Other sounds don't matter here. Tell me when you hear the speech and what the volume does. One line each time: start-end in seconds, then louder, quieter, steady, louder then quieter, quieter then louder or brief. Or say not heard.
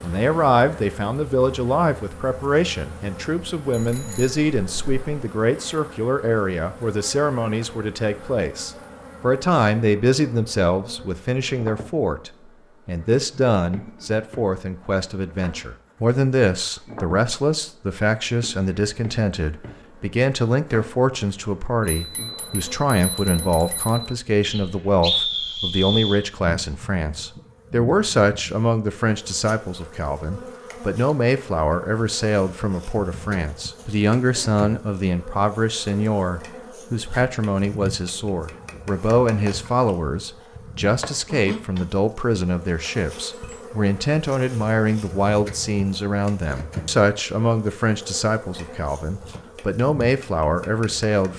0.0-51.3 steady.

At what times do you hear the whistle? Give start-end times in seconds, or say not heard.
24.4-26.2.